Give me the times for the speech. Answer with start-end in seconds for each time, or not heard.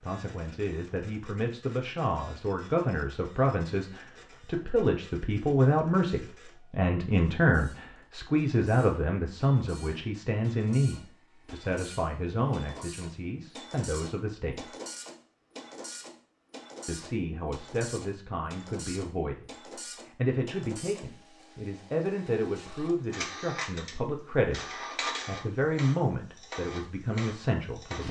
0.0-14.7, 16.9-28.0.